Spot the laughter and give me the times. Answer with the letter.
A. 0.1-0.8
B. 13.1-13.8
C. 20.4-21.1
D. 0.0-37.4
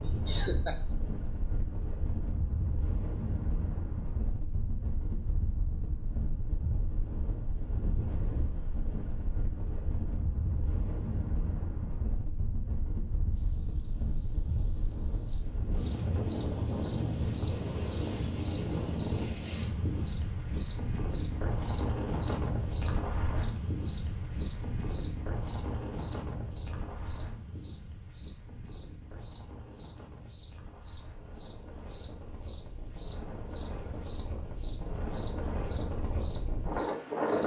A.